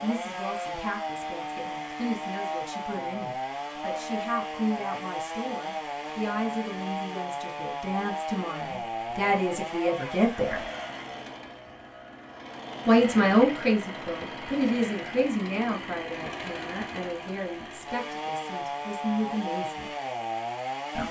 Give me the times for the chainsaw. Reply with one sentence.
The chainsaw can be heard from 0.0 to 21.0 s.